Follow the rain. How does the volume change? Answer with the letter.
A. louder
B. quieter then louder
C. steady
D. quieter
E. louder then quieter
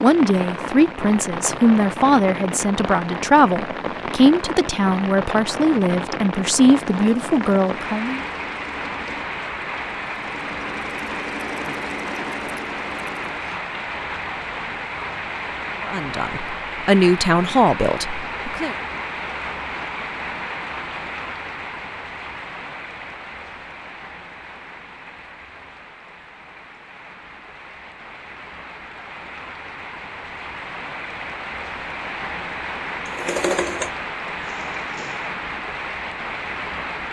B.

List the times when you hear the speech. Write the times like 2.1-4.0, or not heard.
0.0-8.2, 15.8-18.8.